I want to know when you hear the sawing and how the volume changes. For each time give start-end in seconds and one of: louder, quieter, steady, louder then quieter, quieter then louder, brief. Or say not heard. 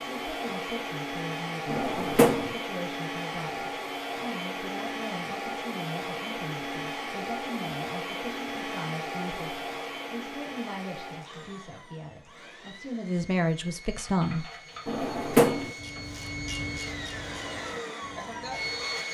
not heard.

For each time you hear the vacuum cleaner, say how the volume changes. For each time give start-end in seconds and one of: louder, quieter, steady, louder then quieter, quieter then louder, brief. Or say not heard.
0.0-19.0 quieter then louder.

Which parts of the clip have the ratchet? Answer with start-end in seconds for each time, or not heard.
13.8-19.0.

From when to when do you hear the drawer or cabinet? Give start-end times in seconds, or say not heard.
1.6-2.5, 14.8-15.7.